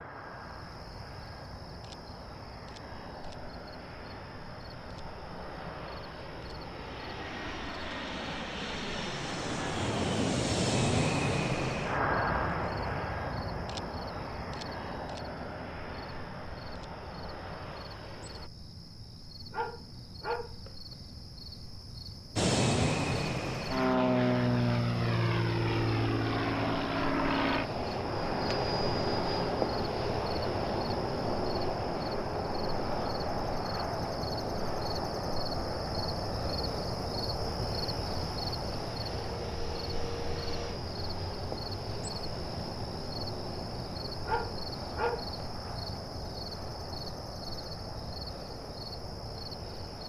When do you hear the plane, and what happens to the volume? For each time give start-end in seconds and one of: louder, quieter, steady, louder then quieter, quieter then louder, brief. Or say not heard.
0.0-18.5 louder then quieter
22.4-50.0 quieter.